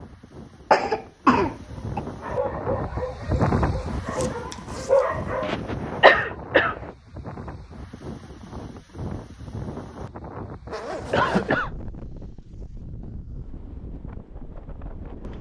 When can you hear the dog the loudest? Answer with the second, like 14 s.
5 s.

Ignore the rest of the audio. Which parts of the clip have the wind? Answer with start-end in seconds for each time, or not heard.
0.0-15.3.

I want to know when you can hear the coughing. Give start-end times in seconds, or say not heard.
0.7-2.0, 5.4-6.9, 11.1-11.7.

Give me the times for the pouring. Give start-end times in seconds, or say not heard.
not heard.